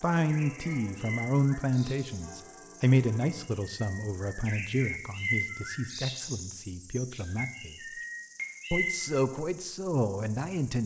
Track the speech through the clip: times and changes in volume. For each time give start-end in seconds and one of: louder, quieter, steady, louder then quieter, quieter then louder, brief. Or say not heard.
0.0-7.8 quieter
8.7-10.8 brief.